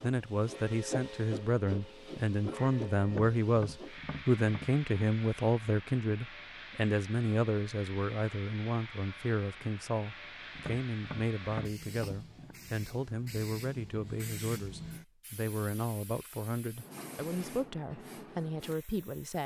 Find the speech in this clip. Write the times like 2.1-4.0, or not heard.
0.0-19.4.